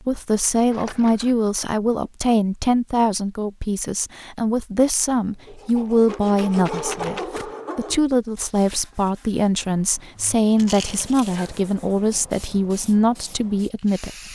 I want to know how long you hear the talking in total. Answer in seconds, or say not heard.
14 s.